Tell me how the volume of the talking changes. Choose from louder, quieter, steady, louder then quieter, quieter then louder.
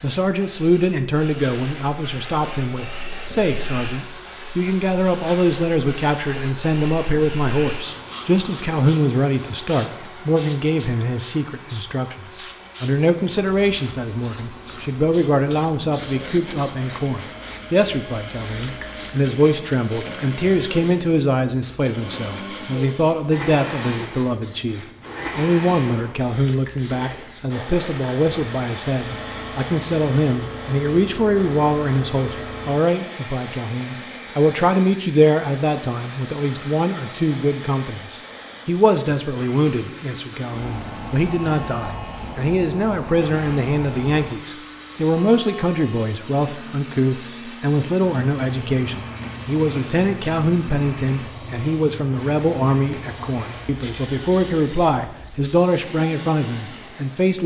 steady.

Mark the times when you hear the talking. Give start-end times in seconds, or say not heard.
0.0-57.4.